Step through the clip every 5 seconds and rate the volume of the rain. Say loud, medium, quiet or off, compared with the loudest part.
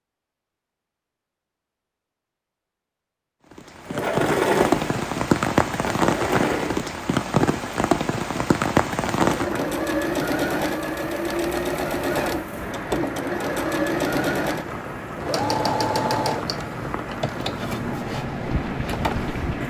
loud, loud, medium, medium.